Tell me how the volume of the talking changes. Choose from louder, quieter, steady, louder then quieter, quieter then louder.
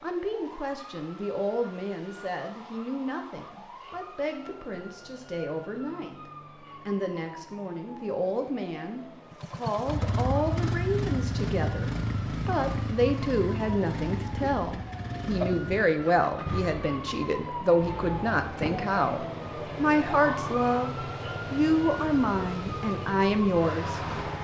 louder.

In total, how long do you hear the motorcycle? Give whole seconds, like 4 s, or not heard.
15 s.